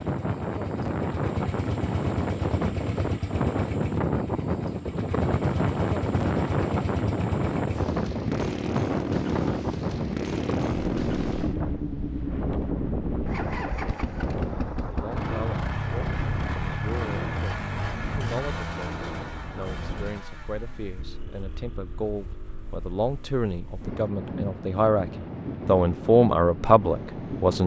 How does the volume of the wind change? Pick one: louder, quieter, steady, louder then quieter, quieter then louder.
quieter.